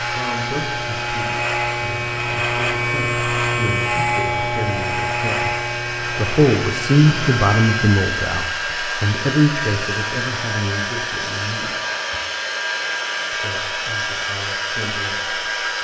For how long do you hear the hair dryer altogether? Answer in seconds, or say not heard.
16 s.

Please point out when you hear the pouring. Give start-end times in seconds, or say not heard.
not heard.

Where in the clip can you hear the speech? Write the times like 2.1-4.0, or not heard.
0.0-11.8, 13.3-15.7.